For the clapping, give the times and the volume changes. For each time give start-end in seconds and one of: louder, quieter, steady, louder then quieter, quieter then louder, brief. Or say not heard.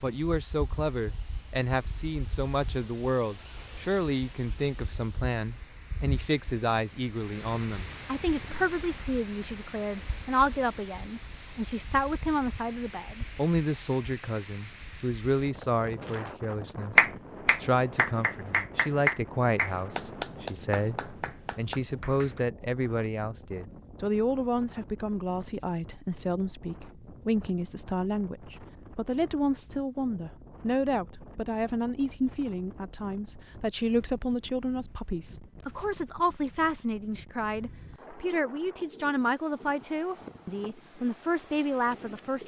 16.9-22.4 quieter.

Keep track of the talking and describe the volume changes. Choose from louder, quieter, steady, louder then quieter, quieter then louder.
steady.